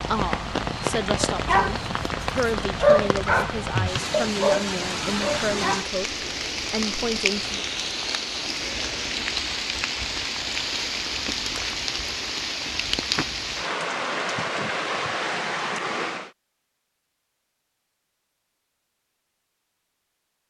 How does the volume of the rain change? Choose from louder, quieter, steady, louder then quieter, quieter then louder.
steady.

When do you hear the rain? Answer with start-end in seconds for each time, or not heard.
0.0-16.3.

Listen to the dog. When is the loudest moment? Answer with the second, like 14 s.
3 s.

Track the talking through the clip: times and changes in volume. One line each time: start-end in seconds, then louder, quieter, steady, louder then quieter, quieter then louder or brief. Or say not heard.
0.0-7.6 steady.